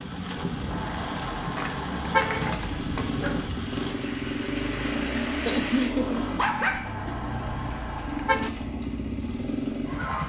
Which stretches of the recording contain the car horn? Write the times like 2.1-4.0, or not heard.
0.7-2.5, 6.8-8.5.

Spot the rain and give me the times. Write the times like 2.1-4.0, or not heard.
0.0-5.9.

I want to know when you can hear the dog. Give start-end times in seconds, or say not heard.
1.6-3.4, 5.5-7.2.